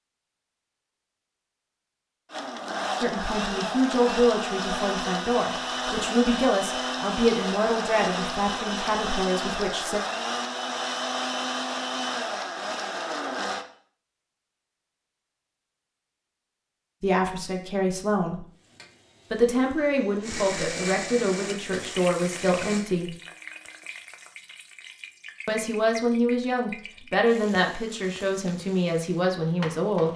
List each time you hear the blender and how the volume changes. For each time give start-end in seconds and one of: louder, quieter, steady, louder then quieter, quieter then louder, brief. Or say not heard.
2.3-13.7 steady
20.2-22.9 brief.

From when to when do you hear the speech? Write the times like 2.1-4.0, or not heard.
3.0-10.0, 17.0-18.4, 19.3-23.1, 25.4-30.1.